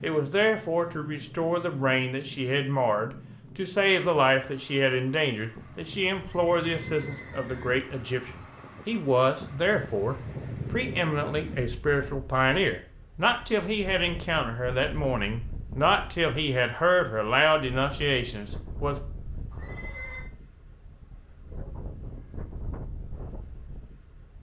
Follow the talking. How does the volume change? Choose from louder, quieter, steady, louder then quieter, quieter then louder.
steady.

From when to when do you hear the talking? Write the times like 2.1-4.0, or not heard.
0.0-18.9.